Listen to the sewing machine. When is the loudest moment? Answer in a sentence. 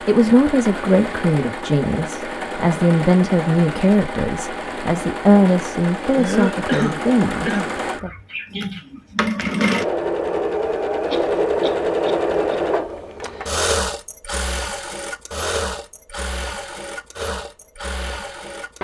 The volume of the sewing machine peaks at 12 seconds.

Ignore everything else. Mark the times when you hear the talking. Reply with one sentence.
You can hear the talking from 0.0 to 8.1 s.